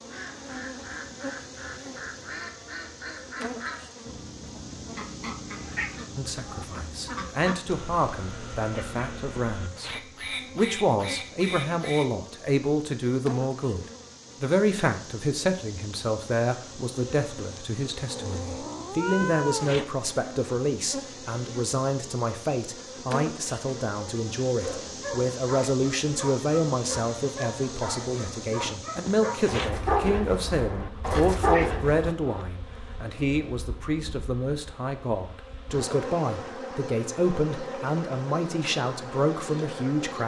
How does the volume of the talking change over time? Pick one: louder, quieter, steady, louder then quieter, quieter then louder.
steady.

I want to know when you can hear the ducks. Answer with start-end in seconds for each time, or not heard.
0.1-12.1.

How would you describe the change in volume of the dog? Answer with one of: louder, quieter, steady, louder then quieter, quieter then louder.
louder.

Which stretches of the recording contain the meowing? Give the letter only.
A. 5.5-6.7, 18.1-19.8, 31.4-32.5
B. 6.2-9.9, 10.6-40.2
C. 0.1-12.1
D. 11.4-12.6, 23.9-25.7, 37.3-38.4
A.